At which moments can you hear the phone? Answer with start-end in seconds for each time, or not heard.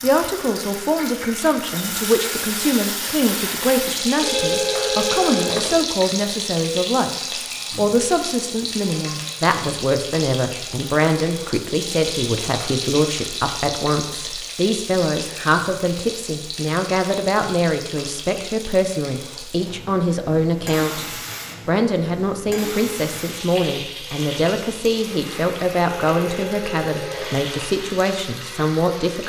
4.2-5.8, 26.1-27.5.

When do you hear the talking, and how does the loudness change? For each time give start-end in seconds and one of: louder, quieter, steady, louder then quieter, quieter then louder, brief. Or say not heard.
0.0-29.2 steady.